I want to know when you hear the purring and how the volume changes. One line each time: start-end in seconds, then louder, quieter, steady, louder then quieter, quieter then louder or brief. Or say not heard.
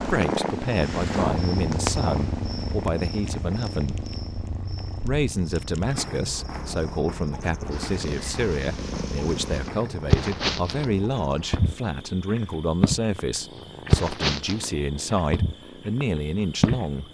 0.0-16.9 quieter then louder.